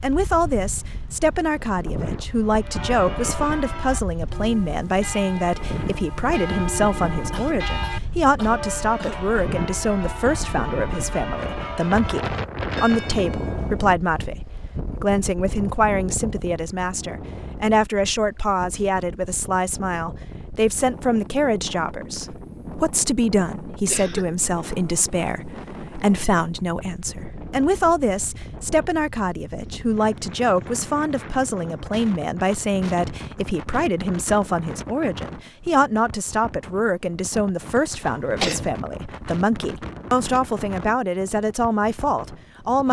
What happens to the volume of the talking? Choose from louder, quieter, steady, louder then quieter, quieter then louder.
steady.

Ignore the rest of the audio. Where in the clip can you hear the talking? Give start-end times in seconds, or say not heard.
0.0-42.8.